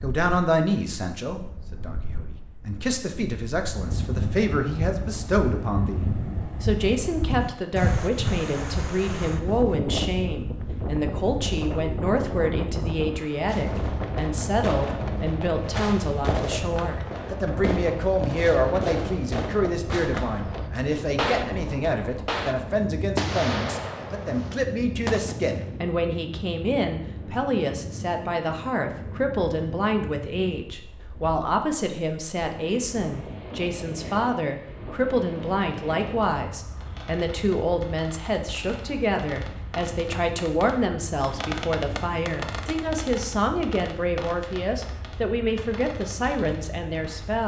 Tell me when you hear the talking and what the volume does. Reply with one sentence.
The talking can be heard from 0.0 to 47.4 s, at a steady volume.